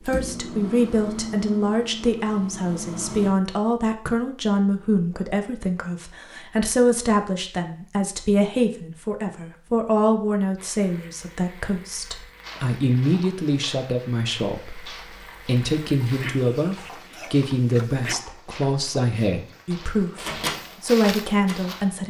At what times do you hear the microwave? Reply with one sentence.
The microwave can be heard from 0.1 to 3.4 s and from 20.1 to 21.9 s.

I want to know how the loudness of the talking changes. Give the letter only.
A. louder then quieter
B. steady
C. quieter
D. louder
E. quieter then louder
B.